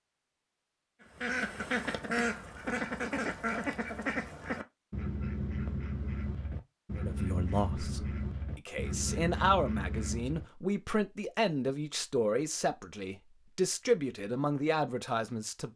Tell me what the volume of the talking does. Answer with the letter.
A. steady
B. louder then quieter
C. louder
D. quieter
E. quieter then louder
C.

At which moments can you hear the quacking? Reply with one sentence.
You can hear the quacking from 1.0 to 10.4 s.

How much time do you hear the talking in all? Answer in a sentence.
You can hear the talking for 9 seconds altogether.